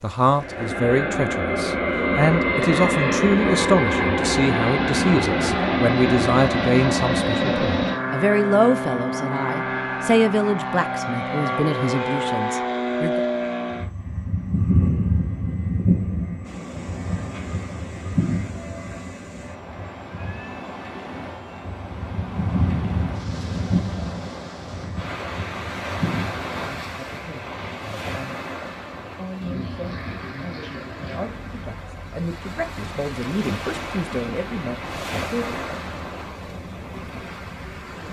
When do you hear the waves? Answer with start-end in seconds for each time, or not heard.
16.4-38.0.